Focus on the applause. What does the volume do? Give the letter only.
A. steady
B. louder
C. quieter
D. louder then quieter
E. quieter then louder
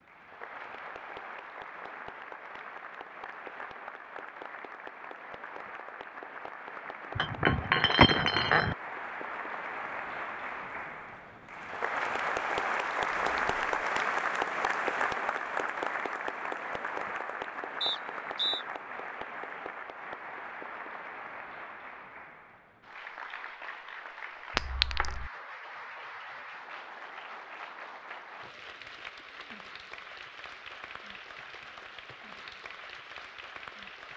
D.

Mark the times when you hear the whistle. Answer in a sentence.
The whistle can be heard from 17.8 to 18.6 s.